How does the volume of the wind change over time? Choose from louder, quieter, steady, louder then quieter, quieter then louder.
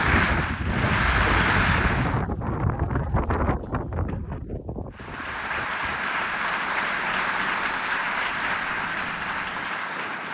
quieter.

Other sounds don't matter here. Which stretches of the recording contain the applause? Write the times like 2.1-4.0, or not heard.
0.0-2.2, 4.9-10.2.